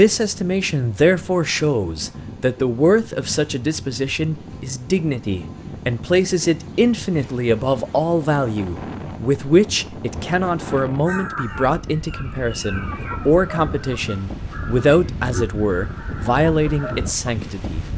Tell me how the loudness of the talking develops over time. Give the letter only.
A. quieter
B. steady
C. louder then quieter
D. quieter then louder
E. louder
B.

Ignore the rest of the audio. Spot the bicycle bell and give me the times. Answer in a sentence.
The bicycle bell can't be heard in this clip.